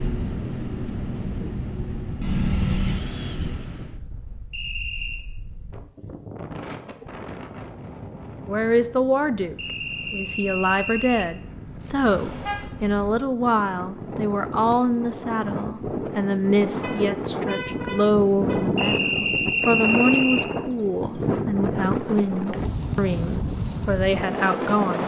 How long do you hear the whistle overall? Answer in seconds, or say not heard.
4 s.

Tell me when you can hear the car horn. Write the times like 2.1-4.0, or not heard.
2.2-3.0, 12.0-12.7, 16.8-18.6.